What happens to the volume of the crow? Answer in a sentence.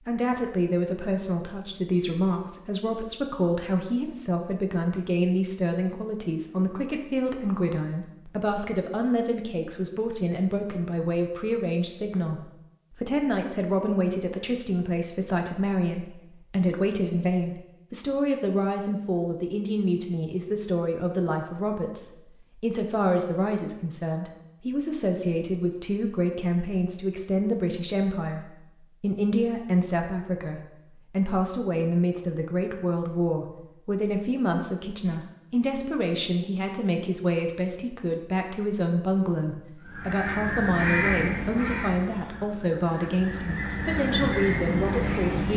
The volume of the crow goes down, then up.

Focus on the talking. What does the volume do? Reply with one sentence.
The loudness of the talking stays about the same.